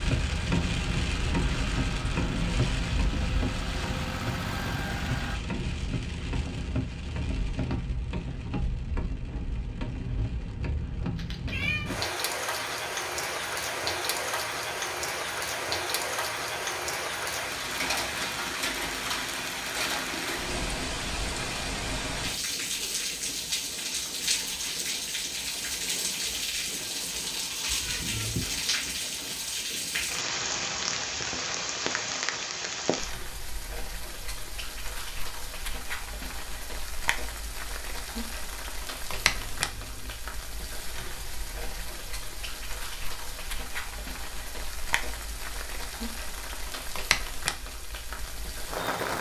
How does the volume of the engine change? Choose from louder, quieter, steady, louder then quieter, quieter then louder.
louder.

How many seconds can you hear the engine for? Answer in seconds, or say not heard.
5 s.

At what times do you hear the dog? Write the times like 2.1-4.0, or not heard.
not heard.